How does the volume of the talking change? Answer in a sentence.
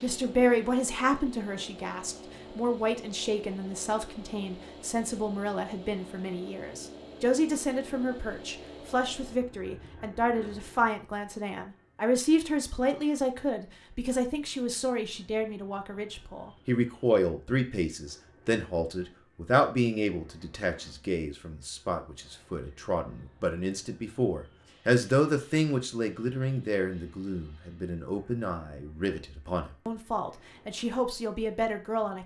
The volume of the talking stays about the same.